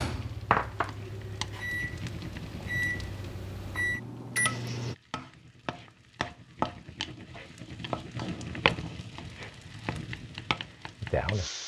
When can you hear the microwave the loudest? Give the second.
4 s.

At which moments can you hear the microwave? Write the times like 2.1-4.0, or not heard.
0.0-5.0.